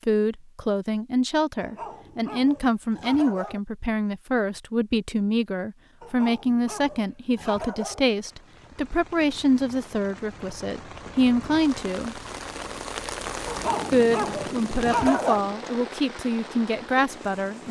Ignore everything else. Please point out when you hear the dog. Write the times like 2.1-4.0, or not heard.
1.6-3.6, 6.0-8.0, 13.4-15.4.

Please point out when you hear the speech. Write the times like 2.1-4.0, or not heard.
0.1-12.2, 13.9-17.6.